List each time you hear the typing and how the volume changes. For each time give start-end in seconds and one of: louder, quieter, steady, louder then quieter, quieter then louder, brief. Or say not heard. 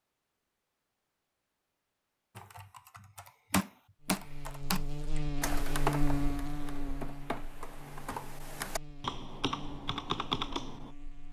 2.4-10.9 quieter then louder.